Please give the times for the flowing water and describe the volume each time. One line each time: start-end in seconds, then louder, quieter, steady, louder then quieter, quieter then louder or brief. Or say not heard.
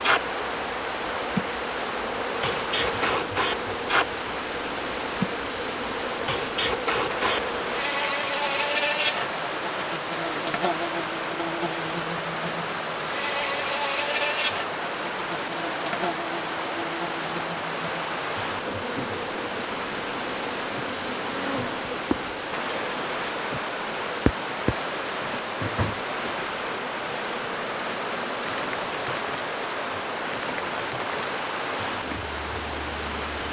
0.0-33.4 steady.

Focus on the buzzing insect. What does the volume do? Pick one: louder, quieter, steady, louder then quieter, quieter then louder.
quieter.